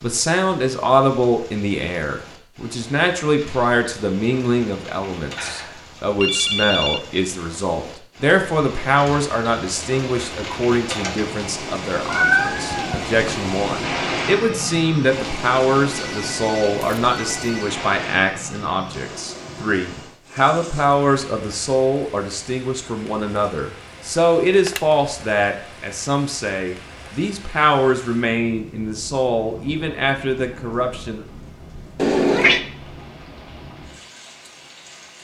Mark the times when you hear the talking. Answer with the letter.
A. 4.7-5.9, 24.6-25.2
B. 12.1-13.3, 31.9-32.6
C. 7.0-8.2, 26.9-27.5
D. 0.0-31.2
D.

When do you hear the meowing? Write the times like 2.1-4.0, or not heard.
12.1-13.3, 31.9-32.6.